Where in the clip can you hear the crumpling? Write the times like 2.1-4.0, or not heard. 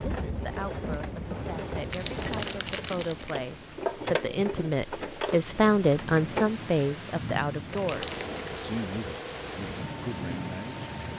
1.9-3.4, 7.7-8.6.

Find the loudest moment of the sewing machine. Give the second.
4 s.